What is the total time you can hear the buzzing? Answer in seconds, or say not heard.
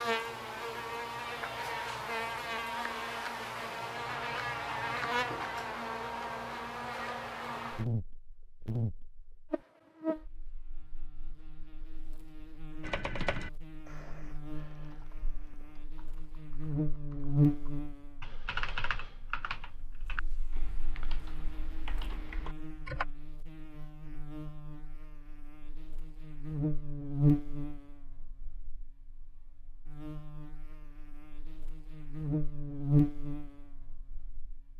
35 s.